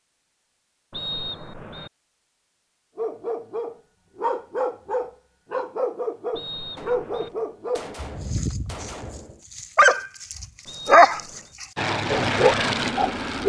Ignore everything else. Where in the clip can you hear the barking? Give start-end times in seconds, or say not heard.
3.0-13.4.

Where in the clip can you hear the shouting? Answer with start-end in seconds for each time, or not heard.
not heard.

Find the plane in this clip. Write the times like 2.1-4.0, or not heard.
11.8-13.4.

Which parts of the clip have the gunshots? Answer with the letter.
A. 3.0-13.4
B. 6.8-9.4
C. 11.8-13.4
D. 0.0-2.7
B.